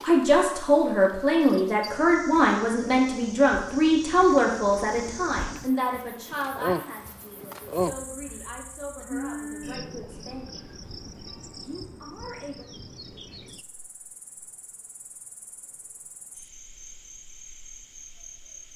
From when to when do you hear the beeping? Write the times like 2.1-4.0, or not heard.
not heard.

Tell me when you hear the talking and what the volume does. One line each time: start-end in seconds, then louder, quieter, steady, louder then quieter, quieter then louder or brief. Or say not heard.
0.0-10.7 quieter
11.6-12.7 brief.